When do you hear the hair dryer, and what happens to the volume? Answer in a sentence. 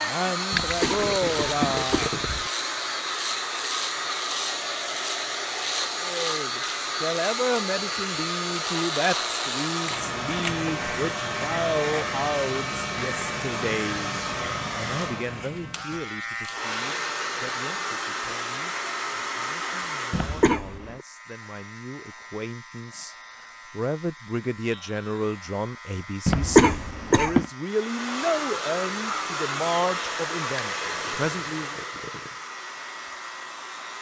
You can hear the hair dryer from 0.0 to 20.6 s, at a steady volume; and from 27.6 to 33.9 s, getting quieter.